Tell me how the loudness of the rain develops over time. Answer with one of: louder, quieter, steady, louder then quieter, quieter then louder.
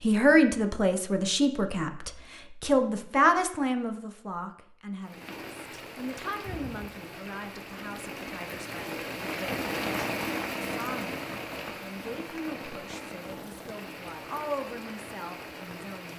louder then quieter.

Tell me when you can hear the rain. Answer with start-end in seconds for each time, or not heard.
5.0-16.1.